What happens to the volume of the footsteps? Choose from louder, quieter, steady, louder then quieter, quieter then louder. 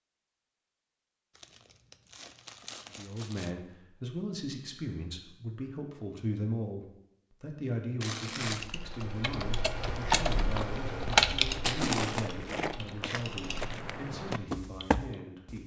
louder.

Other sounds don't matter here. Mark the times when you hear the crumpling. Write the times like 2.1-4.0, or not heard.
1.4-3.5, 8.0-8.7, 11.6-12.3.